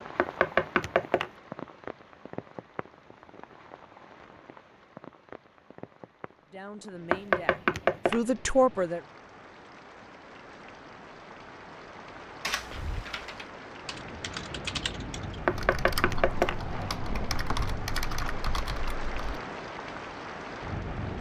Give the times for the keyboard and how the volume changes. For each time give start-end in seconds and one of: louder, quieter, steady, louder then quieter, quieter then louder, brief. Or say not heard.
12.4-19.4 louder.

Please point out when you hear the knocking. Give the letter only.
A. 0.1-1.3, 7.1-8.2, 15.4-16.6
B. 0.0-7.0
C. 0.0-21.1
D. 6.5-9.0
A.